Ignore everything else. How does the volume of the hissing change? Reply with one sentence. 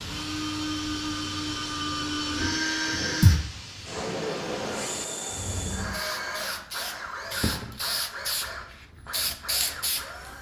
The volume of the hissing goes up.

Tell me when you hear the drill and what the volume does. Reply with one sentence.
The drill can be heard from 0.0 to 10.3 s, getting quieter.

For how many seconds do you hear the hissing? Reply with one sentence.
You can hear the hissing for 10 seconds altogether.